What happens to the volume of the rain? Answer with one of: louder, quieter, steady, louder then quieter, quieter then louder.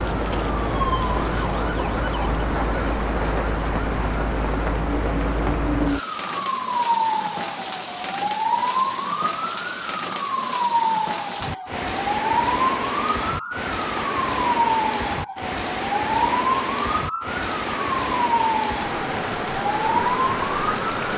steady.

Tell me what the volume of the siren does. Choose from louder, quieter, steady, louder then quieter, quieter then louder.
louder.